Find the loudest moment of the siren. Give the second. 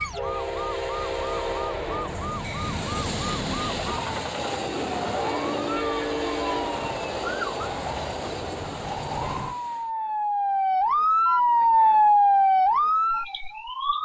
12 s.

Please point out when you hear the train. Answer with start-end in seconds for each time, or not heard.
0.0-9.9.